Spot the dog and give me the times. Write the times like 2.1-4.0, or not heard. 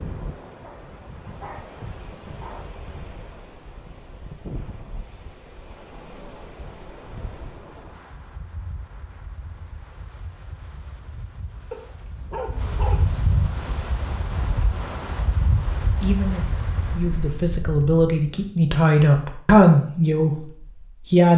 0.6-2.6, 11.7-13.2.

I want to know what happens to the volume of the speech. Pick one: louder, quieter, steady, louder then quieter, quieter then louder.
louder then quieter.